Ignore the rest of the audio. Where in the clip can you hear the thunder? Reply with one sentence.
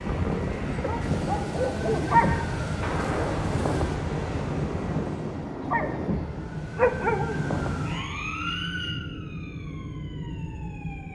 The thunder can be heard from 2.8 to 6.8 s.